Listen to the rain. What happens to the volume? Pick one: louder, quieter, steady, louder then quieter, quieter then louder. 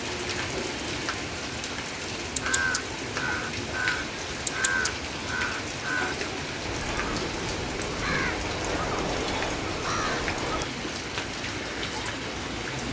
steady.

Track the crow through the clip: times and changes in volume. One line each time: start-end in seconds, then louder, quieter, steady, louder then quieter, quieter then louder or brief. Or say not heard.
2.4-10.7 steady.